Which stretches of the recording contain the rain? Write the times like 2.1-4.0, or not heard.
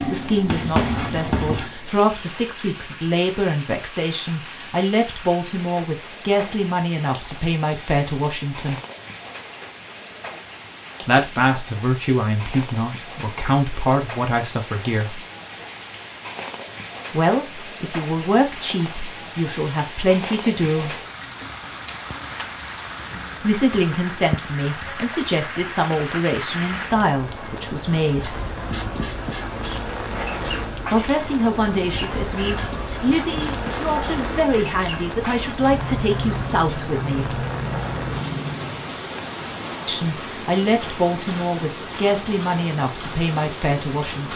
0.0-44.3.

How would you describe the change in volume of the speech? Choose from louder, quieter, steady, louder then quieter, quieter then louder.
steady.